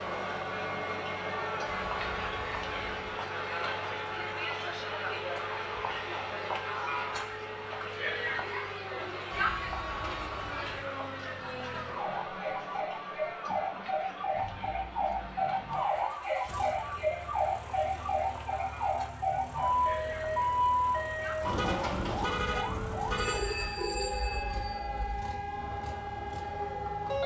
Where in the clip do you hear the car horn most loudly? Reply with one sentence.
The loudest moment of the car horn is at 22 seconds.